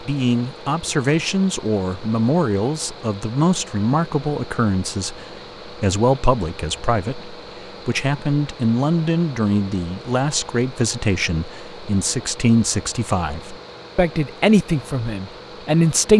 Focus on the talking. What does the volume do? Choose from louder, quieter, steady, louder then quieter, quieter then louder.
steady.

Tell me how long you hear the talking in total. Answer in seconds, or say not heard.
16 s.